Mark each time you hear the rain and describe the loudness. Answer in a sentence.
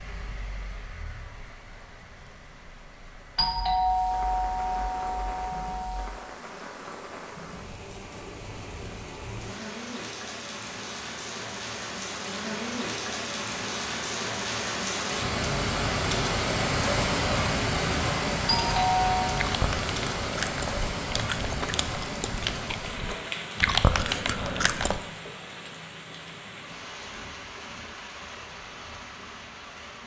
The rain can be heard from 0.0 to 30.0 s, getting louder then quieter.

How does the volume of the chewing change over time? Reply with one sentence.
The loudness of the chewing goes up.